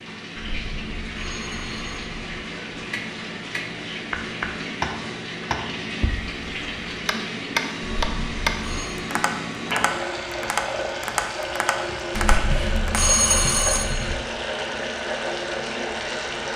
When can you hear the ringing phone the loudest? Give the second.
13 s.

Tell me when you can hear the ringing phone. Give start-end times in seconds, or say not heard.
0.3-2.4, 7.8-9.1, 12.1-14.2.